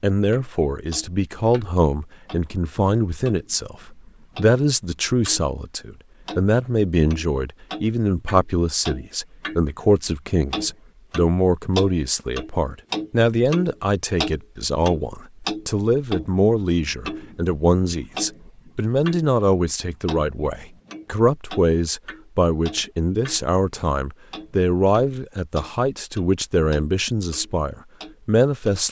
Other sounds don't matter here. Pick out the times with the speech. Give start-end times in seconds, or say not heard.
0.0-28.8.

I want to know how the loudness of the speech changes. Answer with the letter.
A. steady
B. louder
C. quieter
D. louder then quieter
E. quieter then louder
A.